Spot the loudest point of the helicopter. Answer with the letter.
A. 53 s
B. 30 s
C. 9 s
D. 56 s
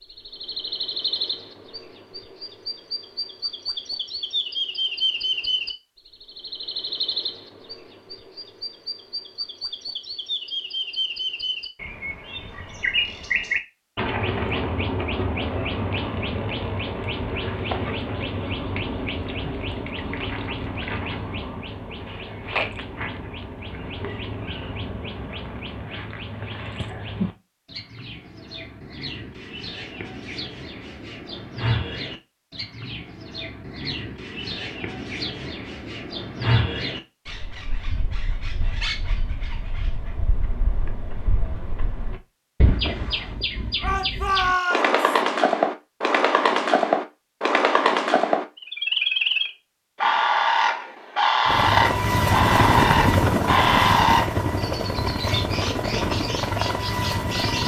A.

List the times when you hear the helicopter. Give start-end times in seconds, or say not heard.
51.5-57.6.